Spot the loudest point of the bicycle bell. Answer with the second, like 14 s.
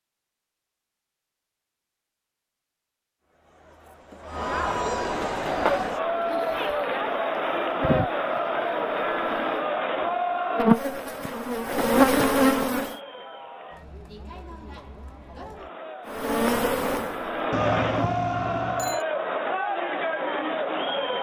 18 s.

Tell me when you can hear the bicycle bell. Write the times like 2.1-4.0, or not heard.
17.5-19.1.